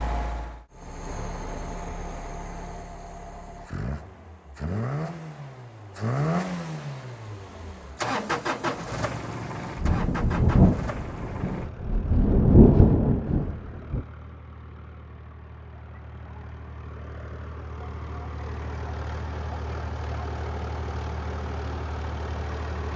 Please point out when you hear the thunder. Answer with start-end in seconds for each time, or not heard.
9.8-14.1.